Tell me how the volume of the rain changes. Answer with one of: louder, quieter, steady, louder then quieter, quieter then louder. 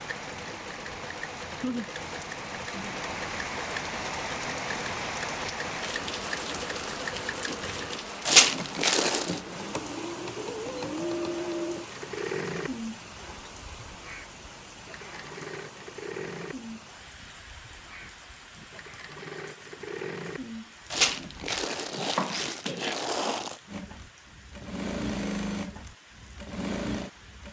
quieter.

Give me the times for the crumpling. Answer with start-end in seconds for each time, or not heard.
8.2-9.4, 20.9-23.6.